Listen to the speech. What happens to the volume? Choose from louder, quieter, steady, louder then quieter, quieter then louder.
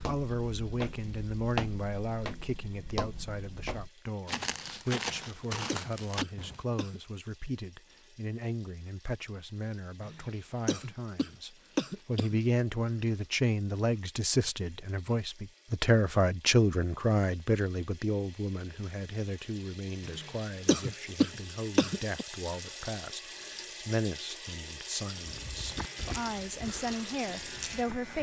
louder then quieter.